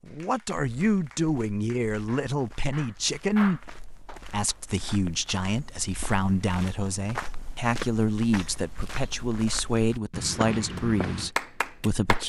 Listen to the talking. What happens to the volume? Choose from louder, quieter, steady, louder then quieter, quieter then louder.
steady.